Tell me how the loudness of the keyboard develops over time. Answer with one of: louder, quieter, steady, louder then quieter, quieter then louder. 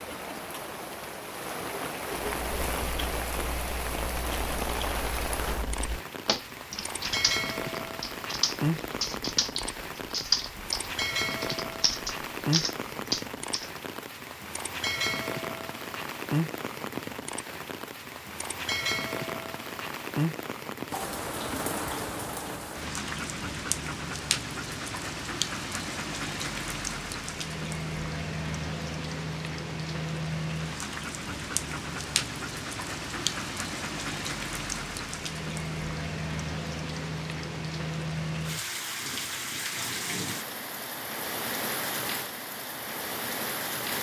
louder.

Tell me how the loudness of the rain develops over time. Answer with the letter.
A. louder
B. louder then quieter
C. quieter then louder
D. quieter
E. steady
E.